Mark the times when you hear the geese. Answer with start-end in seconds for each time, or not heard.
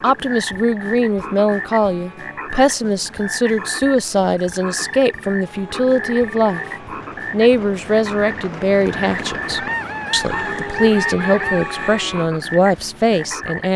9.6-11.7.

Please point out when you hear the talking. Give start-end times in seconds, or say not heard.
0.0-6.6, 7.3-13.7.